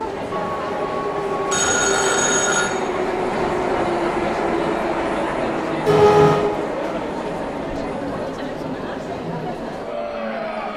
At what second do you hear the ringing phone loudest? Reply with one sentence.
The loudest moment of the ringing phone is at 6 seconds.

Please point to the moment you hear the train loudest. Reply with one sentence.
The volume of the train peaks at 4 seconds.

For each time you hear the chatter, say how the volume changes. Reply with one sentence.
The chatter can be heard from 0.0 to 10.7 s, at a steady volume.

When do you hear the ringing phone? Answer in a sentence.
You can hear the ringing phone from 0.3 to 2.7 s and from 5.8 to 6.5 s.